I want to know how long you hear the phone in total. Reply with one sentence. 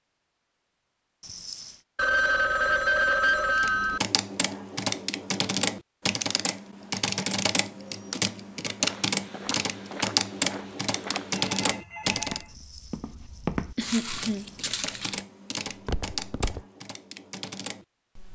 The phone can be heard for 3 seconds in total.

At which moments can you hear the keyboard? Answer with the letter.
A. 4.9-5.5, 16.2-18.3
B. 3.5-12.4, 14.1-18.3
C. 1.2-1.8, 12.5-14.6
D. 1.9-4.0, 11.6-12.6
B.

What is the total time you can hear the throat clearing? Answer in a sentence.
The throat clearing can be heard for 3 seconds in total.